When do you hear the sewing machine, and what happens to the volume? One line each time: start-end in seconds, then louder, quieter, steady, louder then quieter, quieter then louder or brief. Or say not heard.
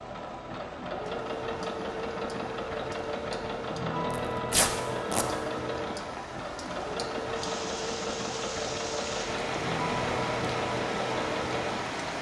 0.0-12.0 steady.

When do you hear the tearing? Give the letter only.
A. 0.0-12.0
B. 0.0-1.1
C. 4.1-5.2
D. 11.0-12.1
C.